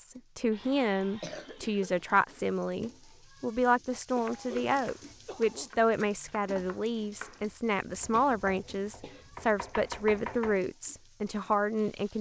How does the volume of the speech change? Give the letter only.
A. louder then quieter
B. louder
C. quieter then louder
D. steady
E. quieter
D.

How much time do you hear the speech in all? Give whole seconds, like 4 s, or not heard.
12 s.